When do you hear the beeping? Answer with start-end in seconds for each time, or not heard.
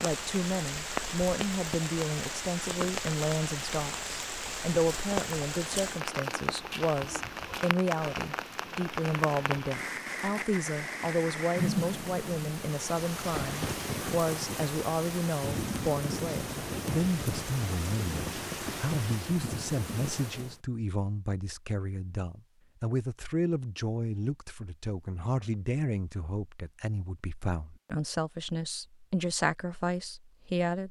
not heard.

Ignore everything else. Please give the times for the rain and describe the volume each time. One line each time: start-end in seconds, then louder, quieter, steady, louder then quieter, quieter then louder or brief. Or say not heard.
0.0-20.6 steady.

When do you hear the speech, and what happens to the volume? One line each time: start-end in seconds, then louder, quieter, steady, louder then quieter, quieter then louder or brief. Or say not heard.
0.0-30.8 steady.